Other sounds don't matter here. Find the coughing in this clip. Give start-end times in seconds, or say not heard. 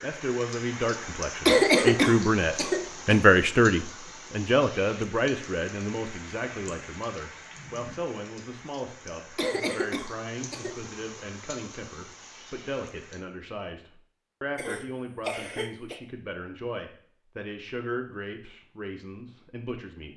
1.4-3.2, 9.3-10.8, 14.6-16.0.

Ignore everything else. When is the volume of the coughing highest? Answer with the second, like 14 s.
2 s.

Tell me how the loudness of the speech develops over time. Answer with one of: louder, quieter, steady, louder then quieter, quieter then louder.
quieter.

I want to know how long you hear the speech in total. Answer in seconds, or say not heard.
20 s.